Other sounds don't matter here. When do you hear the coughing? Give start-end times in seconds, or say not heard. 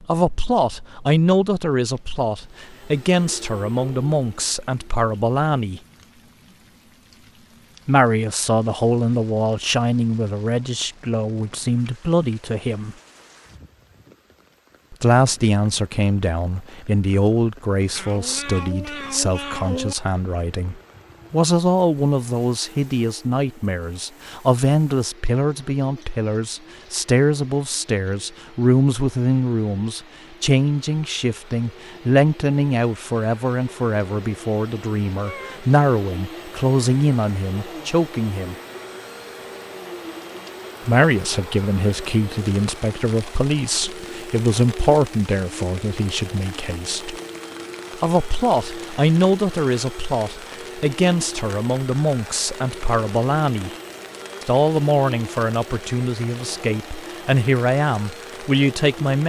not heard.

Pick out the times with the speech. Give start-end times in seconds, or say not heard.
0.0-5.8, 7.8-12.9, 14.9-38.5, 40.9-47.1, 48.0-53.7, 54.4-59.2.